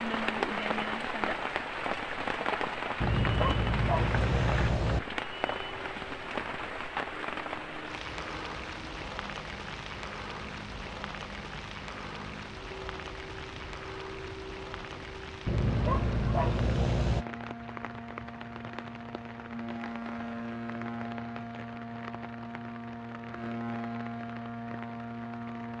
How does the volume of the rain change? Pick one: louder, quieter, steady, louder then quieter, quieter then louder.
quieter.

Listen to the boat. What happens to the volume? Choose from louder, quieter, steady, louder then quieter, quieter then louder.
louder.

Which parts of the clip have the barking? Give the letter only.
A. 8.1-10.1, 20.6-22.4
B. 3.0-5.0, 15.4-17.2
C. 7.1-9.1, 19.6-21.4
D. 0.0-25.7
B.